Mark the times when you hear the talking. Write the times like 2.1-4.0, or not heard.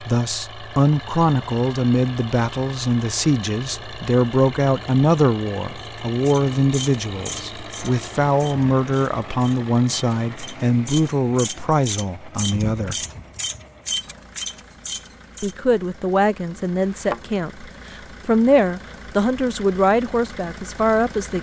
0.0-12.9, 15.4-21.3.